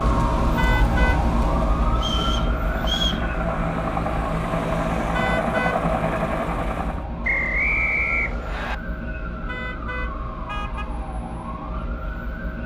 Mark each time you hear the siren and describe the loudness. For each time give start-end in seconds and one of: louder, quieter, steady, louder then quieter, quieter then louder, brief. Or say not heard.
0.0-12.6 quieter.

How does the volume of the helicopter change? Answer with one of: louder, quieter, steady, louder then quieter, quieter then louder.
louder.